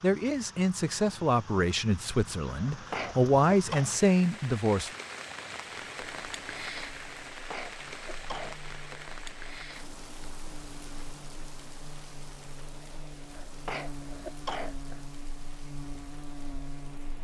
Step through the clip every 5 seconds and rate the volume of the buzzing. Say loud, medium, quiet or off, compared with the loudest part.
off, medium, loud, loud.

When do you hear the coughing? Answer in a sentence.
You can hear the coughing from 2.5 to 3.9 s, from 7.3 to 8.7 s and from 13.3 to 15.1 s.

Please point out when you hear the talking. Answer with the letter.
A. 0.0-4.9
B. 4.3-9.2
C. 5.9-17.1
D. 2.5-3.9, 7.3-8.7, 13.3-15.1
A.